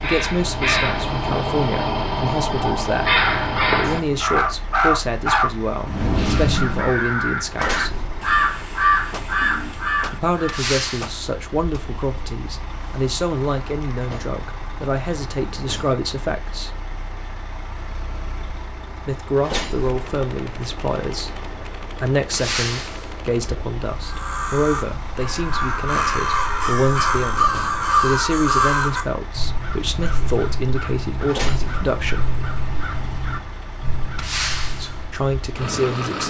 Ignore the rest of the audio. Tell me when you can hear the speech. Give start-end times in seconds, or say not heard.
0.0-7.9, 10.1-16.7, 19.1-21.4, 22.0-32.3, 34.6-36.2.